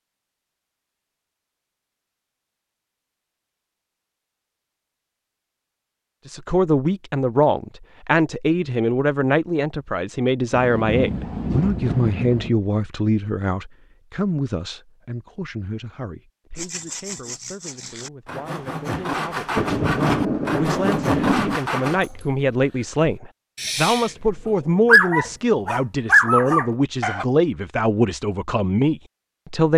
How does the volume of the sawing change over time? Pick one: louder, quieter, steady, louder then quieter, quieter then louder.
louder.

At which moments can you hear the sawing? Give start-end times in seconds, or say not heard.
16.6-22.1.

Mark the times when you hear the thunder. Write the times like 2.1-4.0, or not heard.
10.5-12.5, 19.6-21.6.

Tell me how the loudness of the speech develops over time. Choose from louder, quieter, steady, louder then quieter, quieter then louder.
quieter then louder.